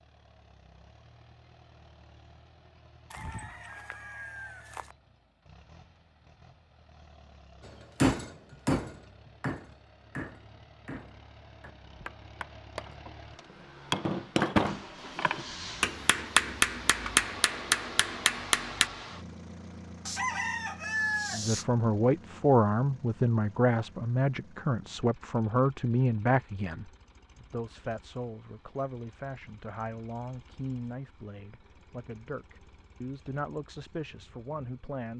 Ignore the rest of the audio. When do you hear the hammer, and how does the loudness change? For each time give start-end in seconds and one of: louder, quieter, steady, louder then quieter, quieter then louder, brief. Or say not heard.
8.0-18.9 quieter then louder.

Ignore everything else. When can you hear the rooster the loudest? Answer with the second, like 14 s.
21 s.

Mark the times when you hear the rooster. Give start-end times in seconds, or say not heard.
3.1-5.0, 20.1-21.6.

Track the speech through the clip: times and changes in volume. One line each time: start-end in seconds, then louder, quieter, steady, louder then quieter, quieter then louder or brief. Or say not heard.
21.3-35.1 quieter.